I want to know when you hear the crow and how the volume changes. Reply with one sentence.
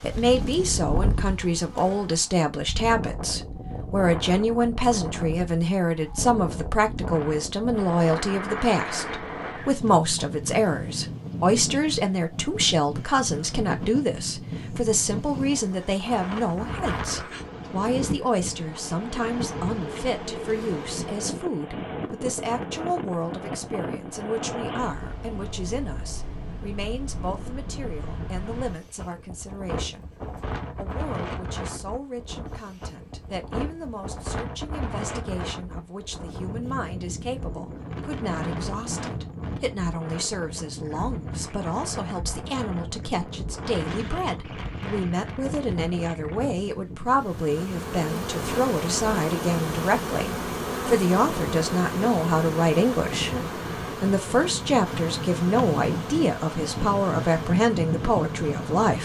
The crow can't be heard in this clip.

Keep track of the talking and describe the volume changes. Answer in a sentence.
The volume of the talking goes down, then up.